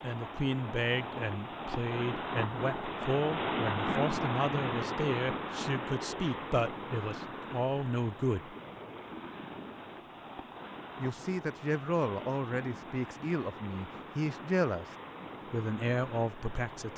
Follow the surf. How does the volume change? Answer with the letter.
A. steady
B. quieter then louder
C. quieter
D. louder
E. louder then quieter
C.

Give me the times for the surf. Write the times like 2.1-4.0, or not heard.
0.0-16.9.